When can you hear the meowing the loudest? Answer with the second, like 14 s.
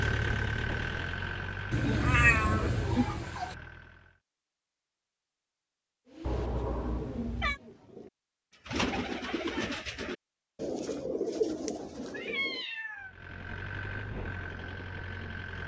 2 s.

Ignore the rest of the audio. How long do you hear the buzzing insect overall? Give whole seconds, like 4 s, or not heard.
not heard.